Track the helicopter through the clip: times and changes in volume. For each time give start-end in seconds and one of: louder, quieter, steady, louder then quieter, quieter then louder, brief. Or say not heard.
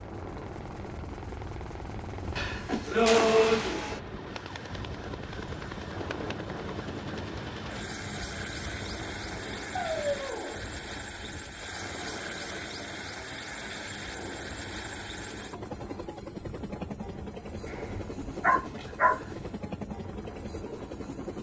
0.0-21.3 steady.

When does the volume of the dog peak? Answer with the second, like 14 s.
3 s.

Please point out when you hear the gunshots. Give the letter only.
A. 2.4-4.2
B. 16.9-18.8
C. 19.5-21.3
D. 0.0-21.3
A.